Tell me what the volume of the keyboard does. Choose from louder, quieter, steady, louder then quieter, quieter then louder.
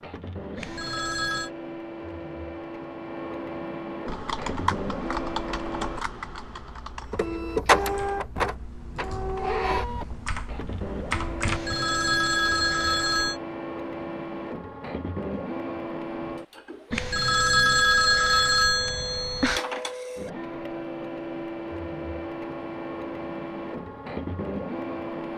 quieter then louder.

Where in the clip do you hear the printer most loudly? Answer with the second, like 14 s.
8 s.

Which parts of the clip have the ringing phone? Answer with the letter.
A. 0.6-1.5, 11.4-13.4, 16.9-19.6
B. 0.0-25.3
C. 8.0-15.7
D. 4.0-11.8
A.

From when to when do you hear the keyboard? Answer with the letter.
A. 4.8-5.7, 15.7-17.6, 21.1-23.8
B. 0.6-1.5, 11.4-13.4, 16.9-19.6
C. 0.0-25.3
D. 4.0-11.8
D.